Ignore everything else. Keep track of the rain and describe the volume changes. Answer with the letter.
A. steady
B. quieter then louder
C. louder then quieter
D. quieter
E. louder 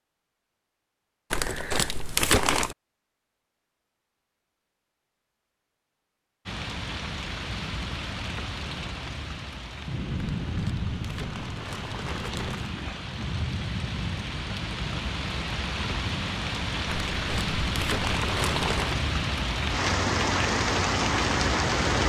E.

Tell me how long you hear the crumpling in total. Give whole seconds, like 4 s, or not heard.
6 s.